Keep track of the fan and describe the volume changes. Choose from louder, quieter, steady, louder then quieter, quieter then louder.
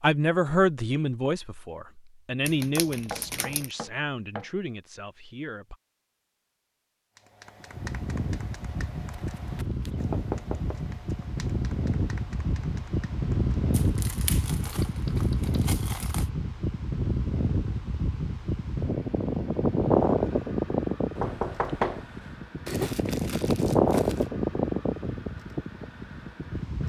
louder.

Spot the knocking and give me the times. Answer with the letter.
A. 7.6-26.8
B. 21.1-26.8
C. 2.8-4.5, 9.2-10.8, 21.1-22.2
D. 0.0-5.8
C.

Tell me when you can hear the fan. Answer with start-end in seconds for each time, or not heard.
7.6-26.8.